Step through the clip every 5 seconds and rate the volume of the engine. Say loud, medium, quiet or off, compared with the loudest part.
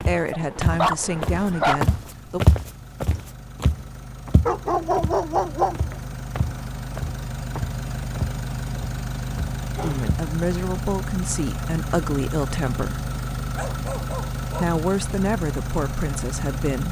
medium, loud, loud, loud.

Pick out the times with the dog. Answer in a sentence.
You can hear the dog from 0.3 to 1.8 s, from 4.5 to 6.0 s, from 9.7 to 10.1 s and from 13.6 to 14.8 s.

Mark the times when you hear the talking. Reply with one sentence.
The talking can be heard from 0.0 to 2.4 s, from 9.8 to 13.1 s and from 14.6 to 16.8 s.